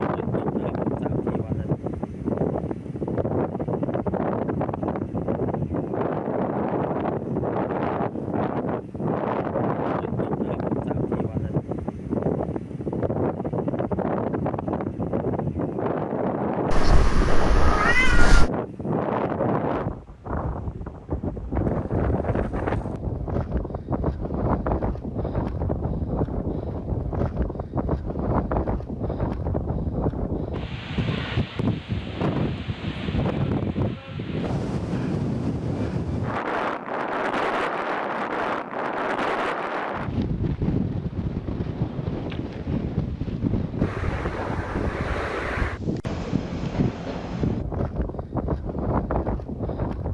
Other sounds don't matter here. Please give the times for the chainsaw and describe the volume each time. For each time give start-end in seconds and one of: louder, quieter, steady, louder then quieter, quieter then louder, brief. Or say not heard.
not heard.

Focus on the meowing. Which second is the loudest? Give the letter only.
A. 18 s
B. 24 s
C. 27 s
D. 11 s
A.